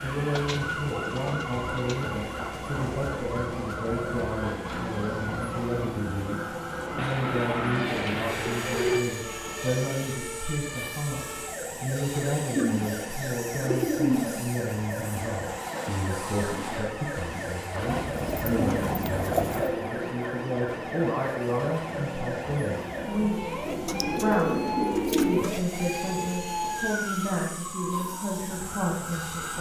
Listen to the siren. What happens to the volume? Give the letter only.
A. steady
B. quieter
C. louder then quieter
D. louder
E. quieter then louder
A.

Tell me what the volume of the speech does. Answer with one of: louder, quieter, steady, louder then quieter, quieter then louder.
steady.